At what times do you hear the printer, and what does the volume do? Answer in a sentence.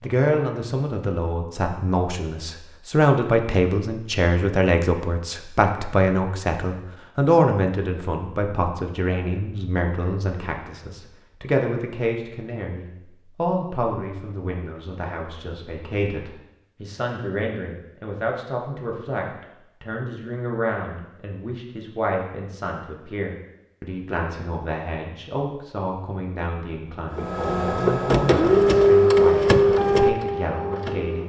You can hear the printer from 27.1 to 31.2 s, getting louder then quieter.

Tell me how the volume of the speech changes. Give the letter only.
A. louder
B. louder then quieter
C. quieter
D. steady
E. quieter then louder
C.